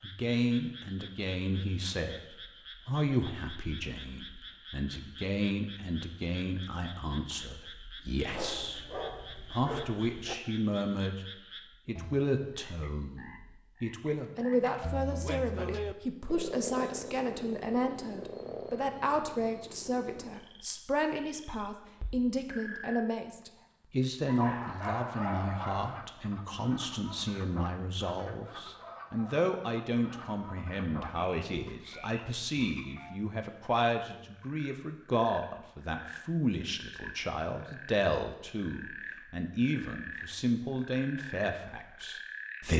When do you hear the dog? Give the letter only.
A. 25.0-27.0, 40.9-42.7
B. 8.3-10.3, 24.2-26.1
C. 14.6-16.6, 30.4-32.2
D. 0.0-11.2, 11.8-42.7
B.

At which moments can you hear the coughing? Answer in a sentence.
You can't hear the coughing here.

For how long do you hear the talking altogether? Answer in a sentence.
You can hear the talking for 42 seconds altogether.